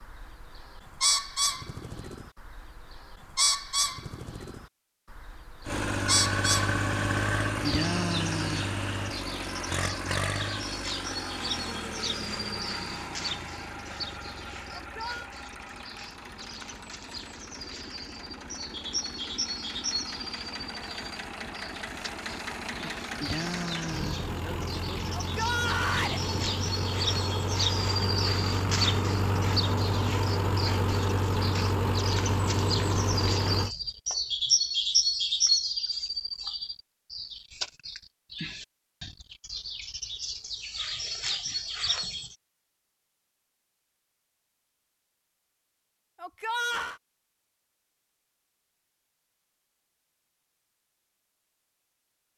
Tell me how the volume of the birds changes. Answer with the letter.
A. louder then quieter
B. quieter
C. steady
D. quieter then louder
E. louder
D.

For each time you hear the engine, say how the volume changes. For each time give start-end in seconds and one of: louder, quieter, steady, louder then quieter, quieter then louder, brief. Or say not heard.
5.7-33.7 quieter then louder.